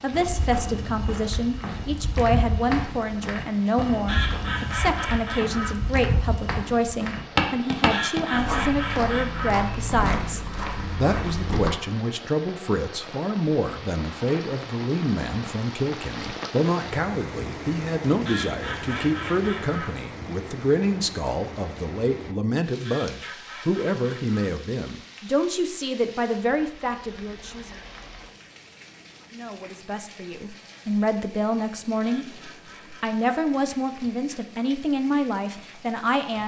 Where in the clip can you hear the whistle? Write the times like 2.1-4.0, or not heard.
not heard.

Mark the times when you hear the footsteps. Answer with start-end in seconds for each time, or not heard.
0.1-11.7.